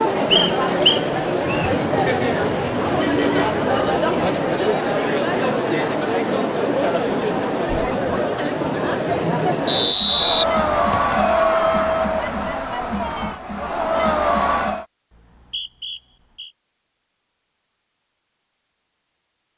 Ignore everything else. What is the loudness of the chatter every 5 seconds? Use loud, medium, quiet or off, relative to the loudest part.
loud, loud, loud, off.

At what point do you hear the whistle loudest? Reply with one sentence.
The loudest moment of the whistle is at 10 seconds.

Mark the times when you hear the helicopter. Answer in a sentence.
You can't hear the helicopter here.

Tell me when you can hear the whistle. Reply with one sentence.
The whistle can be heard from 0.3 to 1.7 s, from 9.7 to 11.2 s and from 15.1 to 16.5 s.